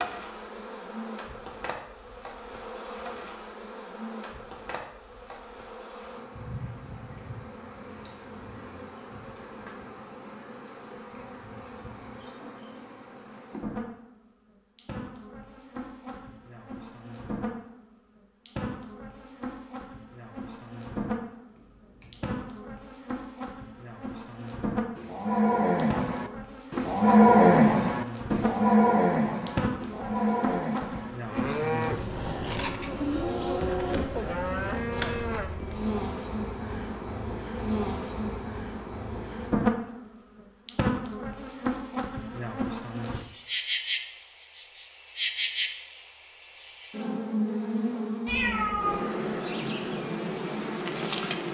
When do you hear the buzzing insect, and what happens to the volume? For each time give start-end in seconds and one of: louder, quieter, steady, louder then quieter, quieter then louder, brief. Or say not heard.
0.0-51.4 louder.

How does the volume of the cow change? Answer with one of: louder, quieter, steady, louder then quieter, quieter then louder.
quieter.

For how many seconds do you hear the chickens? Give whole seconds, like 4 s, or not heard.
not heard.